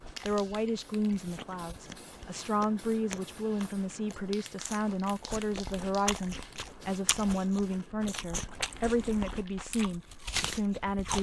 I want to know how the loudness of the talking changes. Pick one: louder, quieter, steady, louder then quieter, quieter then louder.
steady.